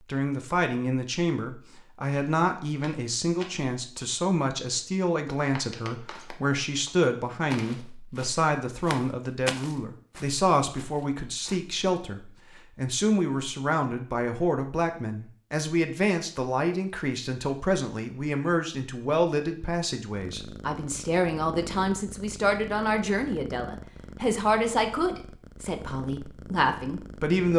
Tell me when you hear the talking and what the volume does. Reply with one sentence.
The talking can be heard from 0.1 to 27.5 s, at a steady volume.